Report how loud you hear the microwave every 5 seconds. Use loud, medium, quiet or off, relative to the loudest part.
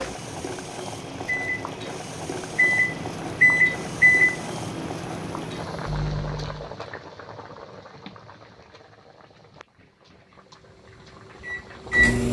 loud, medium, loud.